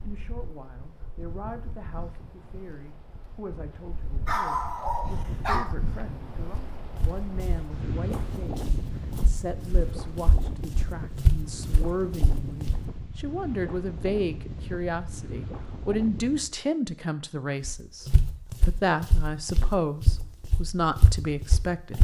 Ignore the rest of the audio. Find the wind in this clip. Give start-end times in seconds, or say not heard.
0.0-16.6.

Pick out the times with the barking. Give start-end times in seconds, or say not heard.
4.2-5.8.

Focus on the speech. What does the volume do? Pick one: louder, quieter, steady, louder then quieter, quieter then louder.
louder.